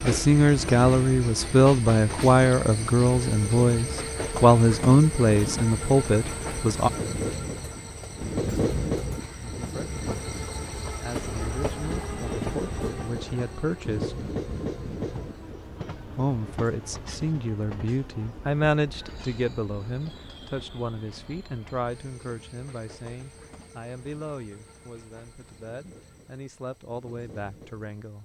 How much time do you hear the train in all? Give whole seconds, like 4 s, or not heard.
28 s.